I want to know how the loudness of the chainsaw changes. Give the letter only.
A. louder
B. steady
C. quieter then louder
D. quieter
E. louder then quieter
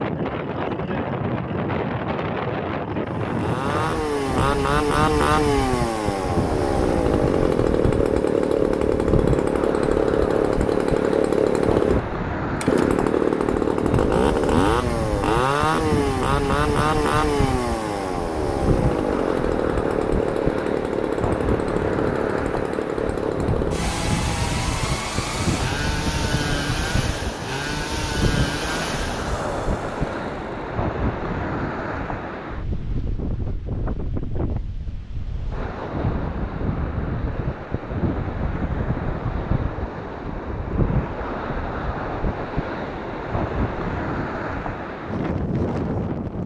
D.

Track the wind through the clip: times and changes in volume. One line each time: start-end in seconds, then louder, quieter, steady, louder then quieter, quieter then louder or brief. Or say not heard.
0.0-46.4 steady.